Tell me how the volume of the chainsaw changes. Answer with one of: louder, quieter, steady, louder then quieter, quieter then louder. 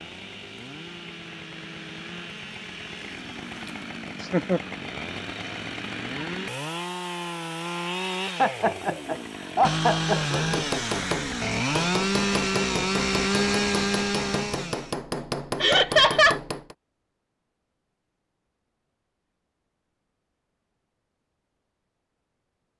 louder.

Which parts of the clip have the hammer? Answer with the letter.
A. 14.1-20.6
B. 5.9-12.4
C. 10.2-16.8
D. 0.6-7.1
C.